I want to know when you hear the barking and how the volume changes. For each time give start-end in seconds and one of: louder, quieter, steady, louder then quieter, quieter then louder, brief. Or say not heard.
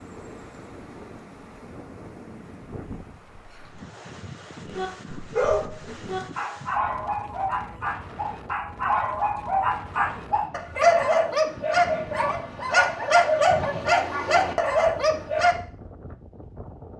4.7-15.6 louder.